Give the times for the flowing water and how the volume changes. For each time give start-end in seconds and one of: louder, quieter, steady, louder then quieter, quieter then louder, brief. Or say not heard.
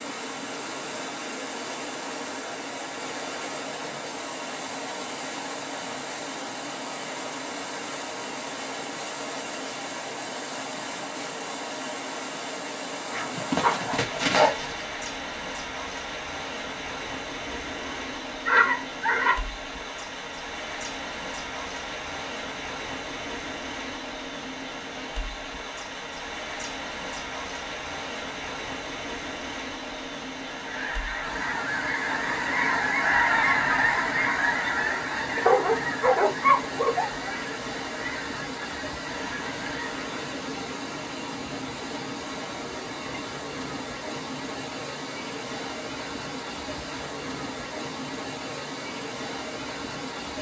0.0-50.3 steady.